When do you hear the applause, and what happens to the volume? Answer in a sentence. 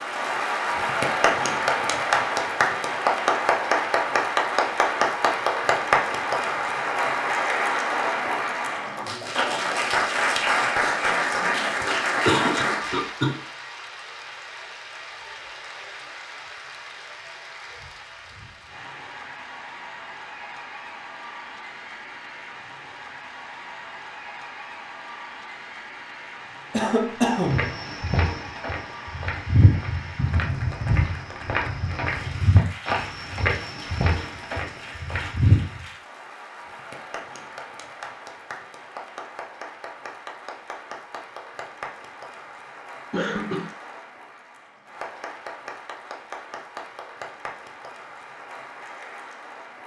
The applause can be heard from 0.0 to 49.8 s, getting quieter.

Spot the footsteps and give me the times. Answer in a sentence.
You can hear the footsteps from 27.3 to 35.9 s.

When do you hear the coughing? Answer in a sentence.
The coughing can be heard from 11.8 to 13.3 s, from 26.7 to 27.7 s and from 43.1 to 43.7 s.